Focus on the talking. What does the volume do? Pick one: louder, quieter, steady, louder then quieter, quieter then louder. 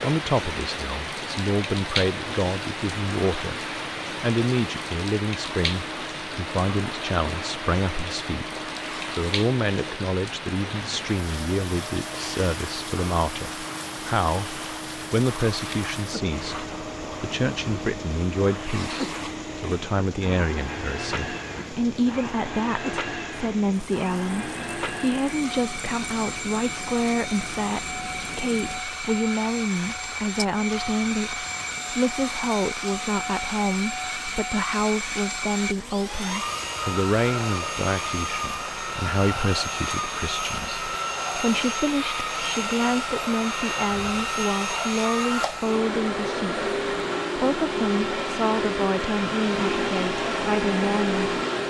steady.